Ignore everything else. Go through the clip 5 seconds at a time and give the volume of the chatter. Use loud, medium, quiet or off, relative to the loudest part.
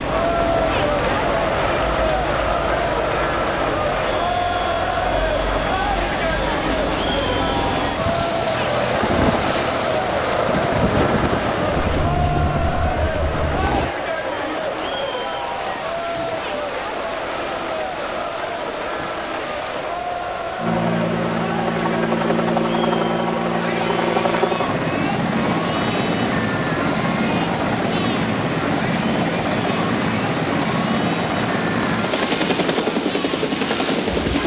loud, loud, loud, medium, medium, medium, medium.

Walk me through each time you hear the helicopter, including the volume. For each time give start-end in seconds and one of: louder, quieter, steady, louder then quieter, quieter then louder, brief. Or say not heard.
0.0-13.9 louder
20.6-34.4 steady.